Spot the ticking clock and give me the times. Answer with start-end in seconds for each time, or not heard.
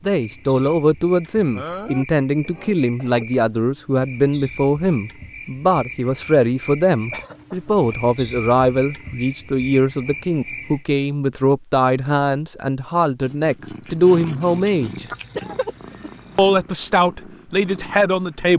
not heard.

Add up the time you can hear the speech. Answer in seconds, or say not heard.
17 s.